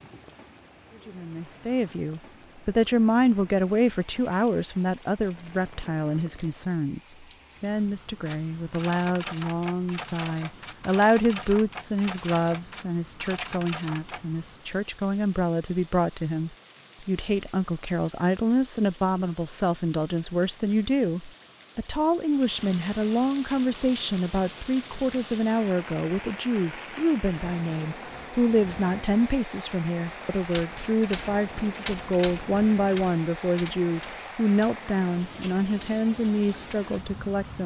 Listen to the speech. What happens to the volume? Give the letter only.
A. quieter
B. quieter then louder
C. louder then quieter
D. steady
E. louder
D.